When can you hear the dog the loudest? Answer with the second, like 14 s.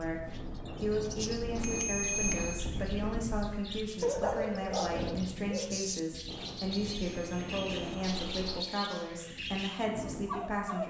4 s.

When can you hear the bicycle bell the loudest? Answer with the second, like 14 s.
2 s.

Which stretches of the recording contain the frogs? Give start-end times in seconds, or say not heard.
not heard.